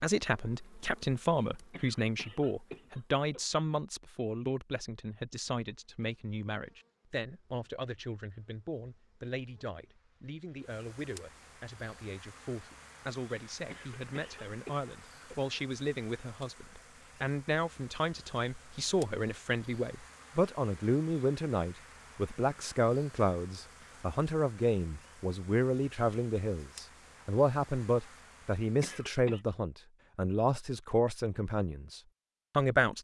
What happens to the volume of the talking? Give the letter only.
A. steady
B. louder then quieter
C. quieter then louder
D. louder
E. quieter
C.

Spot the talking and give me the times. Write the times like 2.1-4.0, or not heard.
0.0-32.9.